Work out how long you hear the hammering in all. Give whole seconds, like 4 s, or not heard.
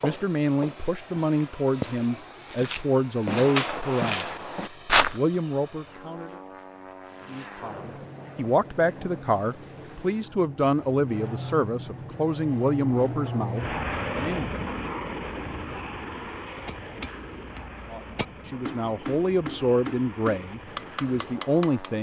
5 s.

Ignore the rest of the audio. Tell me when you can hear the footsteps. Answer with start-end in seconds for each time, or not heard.
0.0-5.2.